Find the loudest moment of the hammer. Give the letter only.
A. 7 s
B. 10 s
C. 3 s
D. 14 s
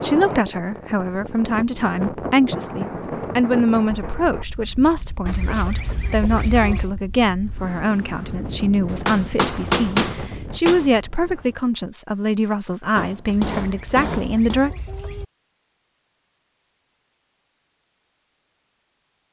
B.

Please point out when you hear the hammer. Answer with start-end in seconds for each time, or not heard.
2.5-4.5, 8.8-10.8, 12.9-14.6.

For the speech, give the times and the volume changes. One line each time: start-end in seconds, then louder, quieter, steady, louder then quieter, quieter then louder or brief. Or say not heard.
0.0-14.7 steady.